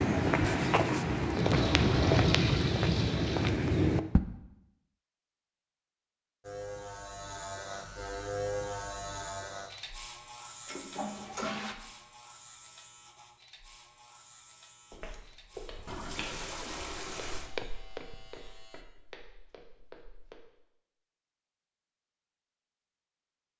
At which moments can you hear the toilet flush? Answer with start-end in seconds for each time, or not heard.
1.4-3.5, 10.7-11.8, 15.8-17.5.